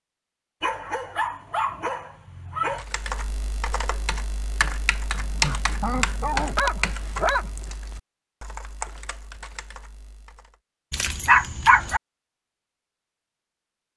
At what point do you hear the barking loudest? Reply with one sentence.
The loudest moment of the barking is at 11 seconds.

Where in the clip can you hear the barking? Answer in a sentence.
The barking can be heard from 0.6 to 2.9 s, from 5.1 to 7.5 s and from 10.9 to 12.0 s.